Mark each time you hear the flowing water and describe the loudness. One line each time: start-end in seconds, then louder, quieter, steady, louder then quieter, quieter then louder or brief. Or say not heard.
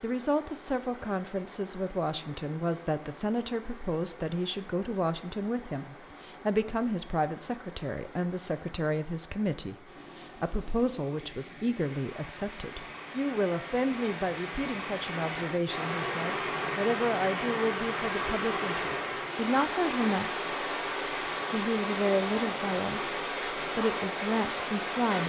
0.0-25.2 louder.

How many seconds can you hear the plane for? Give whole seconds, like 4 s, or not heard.
not heard.